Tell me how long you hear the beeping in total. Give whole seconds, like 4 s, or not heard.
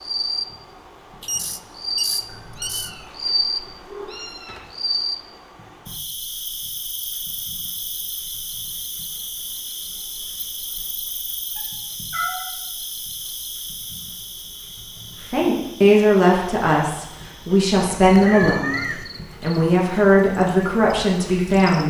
2 s.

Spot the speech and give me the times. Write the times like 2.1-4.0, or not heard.
15.3-21.8.